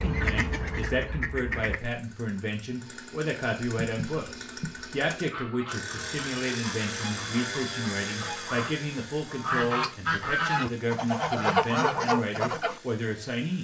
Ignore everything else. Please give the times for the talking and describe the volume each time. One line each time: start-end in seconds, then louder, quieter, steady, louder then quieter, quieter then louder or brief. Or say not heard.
0.0-13.5 steady.